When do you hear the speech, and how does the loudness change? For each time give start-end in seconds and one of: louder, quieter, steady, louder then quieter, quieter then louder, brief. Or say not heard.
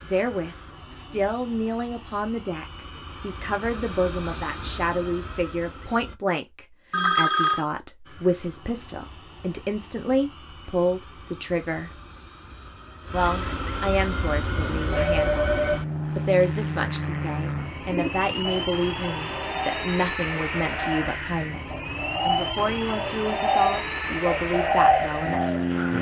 0.0-11.9 steady
13.1-25.4 steady.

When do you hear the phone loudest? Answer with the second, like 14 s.
7 s.